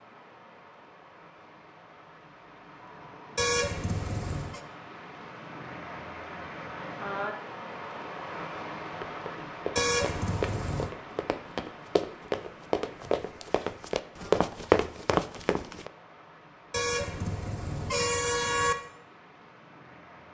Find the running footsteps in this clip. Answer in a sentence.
You can hear the running footsteps from 8.9 to 15.9 s.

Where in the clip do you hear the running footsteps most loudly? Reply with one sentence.
The volume of the running footsteps peaks at 15 seconds.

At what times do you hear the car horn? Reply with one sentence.
The car horn can be heard from 3.4 to 4.6 s, from 9.8 to 10.9 s and from 16.7 to 18.8 s.